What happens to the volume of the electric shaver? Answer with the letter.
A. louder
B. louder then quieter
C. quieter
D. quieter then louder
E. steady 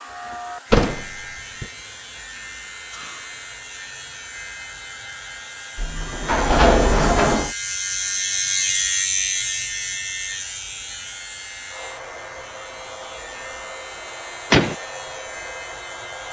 B.